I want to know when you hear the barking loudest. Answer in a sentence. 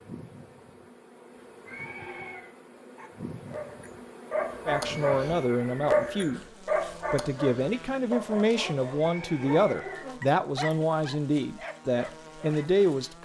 The loudest moment of the barking is at 6 seconds.